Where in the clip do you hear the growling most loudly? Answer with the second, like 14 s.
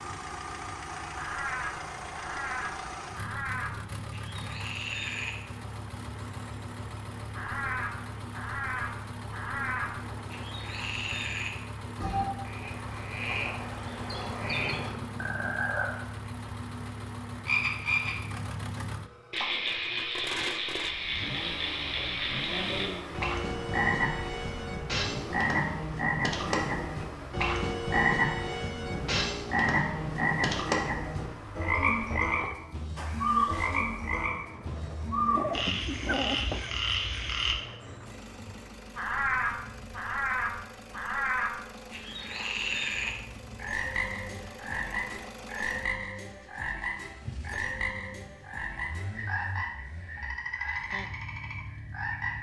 36 s.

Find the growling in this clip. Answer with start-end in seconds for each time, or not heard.
14.2-15.8, 32.1-32.8, 35.3-36.7.